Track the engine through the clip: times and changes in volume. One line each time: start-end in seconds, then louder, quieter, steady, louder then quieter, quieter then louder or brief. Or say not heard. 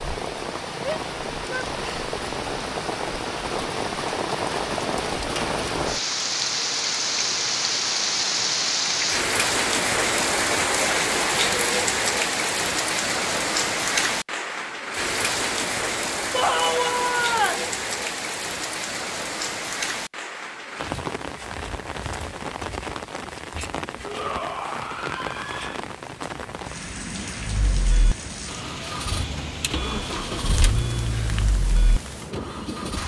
27.4-33.0 louder then quieter.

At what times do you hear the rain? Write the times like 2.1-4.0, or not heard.
0.0-33.0.